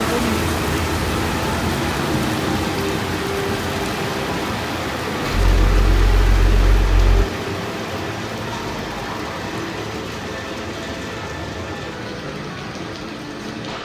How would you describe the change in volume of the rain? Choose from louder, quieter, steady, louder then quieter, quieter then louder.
quieter.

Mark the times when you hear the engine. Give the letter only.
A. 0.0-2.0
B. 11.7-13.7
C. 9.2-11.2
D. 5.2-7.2
D.